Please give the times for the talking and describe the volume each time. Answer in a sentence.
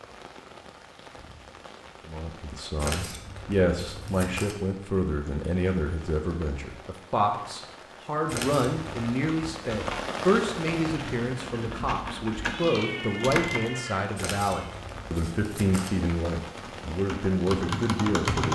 You can hear the talking from 2.0 to 18.5 s, at a steady volume.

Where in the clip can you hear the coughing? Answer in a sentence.
You can't hear the coughing here.